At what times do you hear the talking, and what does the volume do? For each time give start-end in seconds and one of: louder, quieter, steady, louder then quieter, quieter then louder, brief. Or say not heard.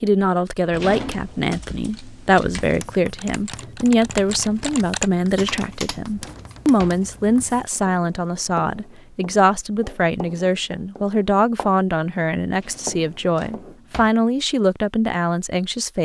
0.0-16.0 steady.